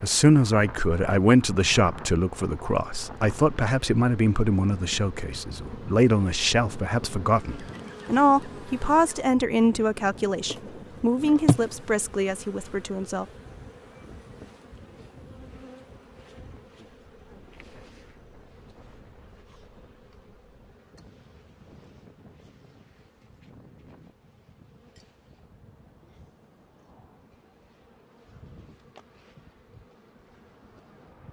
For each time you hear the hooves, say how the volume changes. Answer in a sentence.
The hooves can't be heard in this clip.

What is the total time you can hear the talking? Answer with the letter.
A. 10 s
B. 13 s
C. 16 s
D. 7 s
B.